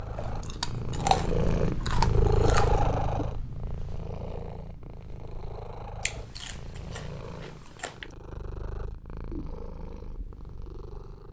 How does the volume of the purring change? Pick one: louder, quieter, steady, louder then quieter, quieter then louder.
quieter.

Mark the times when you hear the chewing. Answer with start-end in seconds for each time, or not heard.
0.1-2.9, 6.0-8.1.